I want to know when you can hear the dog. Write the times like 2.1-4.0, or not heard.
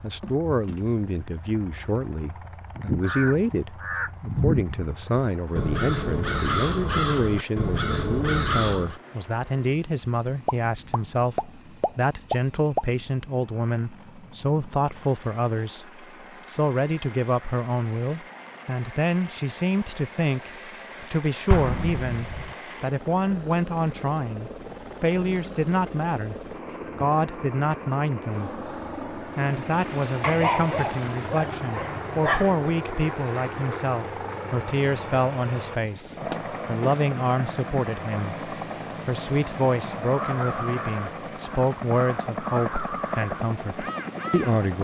30.2-32.6.